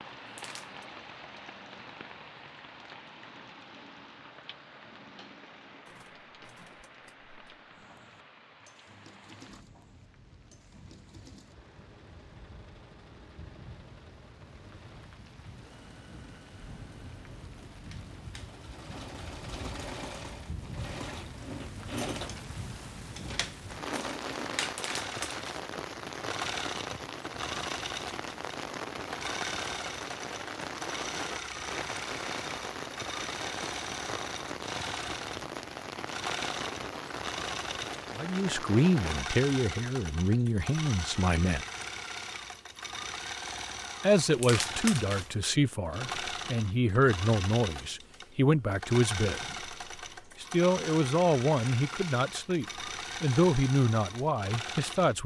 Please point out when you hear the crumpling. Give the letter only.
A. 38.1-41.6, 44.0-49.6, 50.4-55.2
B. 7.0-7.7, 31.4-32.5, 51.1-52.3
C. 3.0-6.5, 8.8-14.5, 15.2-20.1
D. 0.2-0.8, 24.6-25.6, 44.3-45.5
D.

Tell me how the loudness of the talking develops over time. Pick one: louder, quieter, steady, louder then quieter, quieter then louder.
steady.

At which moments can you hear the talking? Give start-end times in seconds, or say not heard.
38.1-41.6, 44.0-49.6, 50.4-55.2.